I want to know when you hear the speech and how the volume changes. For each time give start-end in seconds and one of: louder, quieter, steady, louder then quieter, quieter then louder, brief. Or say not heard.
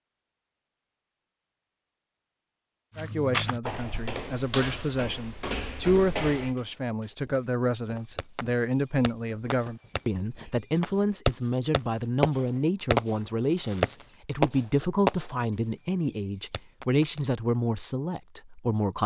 3.0-19.0 steady.